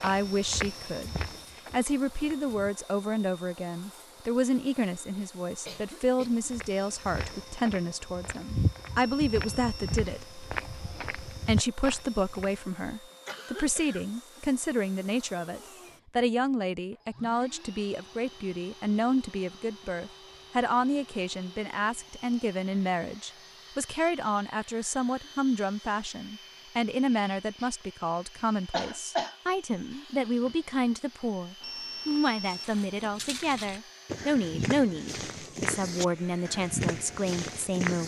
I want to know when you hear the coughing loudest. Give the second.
29 s.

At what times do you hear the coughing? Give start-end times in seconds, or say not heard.
5.7-6.5, 13.1-14.6, 28.7-29.4.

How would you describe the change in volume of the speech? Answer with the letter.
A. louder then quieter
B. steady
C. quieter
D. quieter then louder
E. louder
B.